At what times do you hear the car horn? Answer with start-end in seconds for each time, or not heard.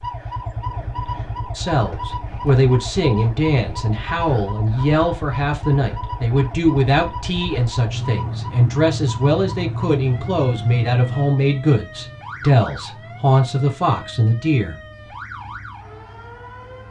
not heard.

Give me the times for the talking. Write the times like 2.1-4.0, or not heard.
1.6-14.8.